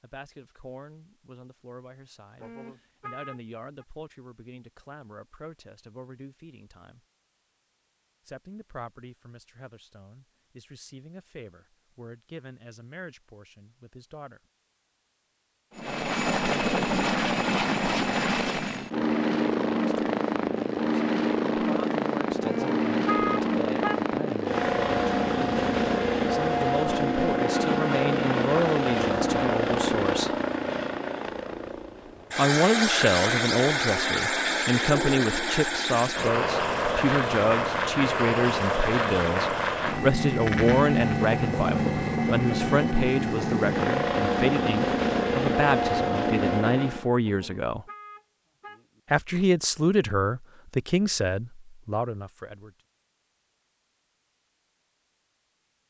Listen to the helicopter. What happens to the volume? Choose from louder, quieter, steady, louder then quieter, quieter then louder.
steady.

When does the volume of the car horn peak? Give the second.
23 s.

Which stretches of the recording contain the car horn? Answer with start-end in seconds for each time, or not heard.
2.4-3.9, 22.4-24.1, 47.2-49.0.